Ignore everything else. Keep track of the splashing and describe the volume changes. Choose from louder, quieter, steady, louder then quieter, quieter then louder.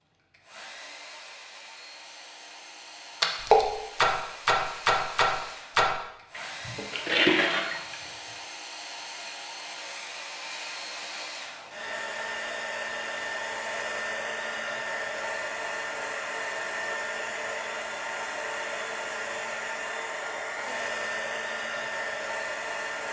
quieter then louder.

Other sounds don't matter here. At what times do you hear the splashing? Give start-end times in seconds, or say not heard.
3.2-8.0.